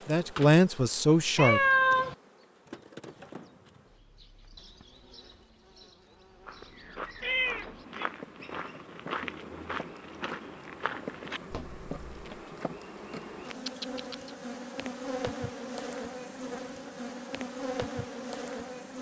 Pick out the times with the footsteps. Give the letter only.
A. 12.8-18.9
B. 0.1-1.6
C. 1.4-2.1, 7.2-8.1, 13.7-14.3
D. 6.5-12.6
D.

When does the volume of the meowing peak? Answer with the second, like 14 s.
2 s.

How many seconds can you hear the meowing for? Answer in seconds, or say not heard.
2 s.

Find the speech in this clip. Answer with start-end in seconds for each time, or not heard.
0.1-1.6.